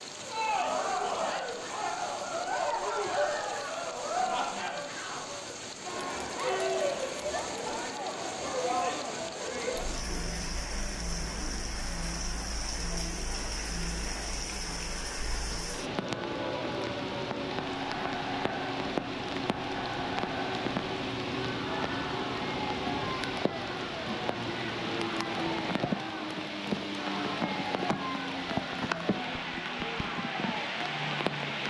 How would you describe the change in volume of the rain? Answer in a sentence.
The volume of the rain goes up.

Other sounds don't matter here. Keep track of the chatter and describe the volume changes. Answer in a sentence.
The volume of the chatter goes down.